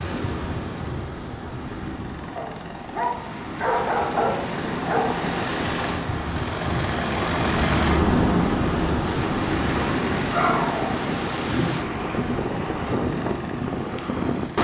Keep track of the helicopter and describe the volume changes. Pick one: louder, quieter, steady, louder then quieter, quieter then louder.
louder then quieter.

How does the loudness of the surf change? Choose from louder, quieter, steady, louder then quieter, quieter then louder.
louder.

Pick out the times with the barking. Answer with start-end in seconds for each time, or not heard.
2.4-5.2, 10.3-11.7.